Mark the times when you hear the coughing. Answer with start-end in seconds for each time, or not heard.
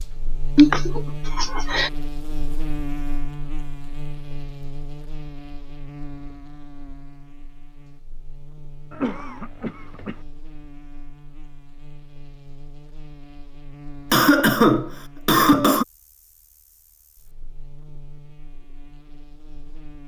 0.6-1.9, 8.9-10.2, 14.1-15.8.